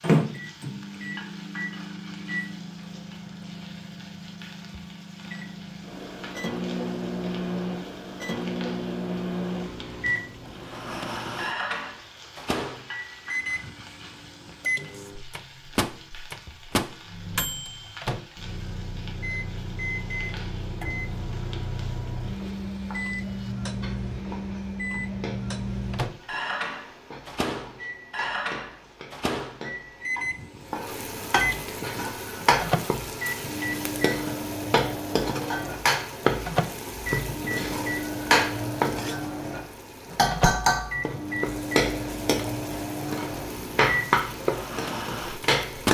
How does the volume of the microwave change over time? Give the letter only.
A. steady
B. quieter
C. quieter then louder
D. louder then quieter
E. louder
A.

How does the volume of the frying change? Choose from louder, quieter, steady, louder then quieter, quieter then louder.
louder.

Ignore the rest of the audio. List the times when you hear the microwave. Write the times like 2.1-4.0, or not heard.
0.0-45.9.